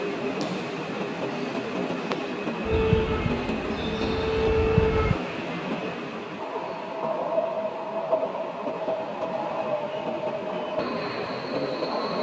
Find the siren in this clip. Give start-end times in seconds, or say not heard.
2.6-5.2.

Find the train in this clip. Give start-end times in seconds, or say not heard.
0.0-12.1.